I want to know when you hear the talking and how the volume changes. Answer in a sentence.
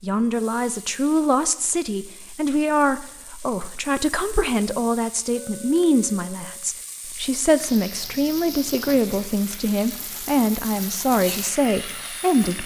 You can hear the talking from 0.0 to 12.6 s, at a steady volume.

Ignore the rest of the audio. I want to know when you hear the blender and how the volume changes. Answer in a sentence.
The blender can't be heard in this clip.